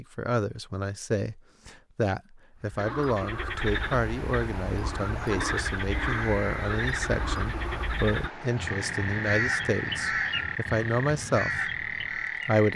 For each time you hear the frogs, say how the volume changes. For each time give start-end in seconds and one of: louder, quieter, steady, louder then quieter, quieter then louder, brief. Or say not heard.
2.8-12.7 steady.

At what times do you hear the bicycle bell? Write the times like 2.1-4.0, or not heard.
not heard.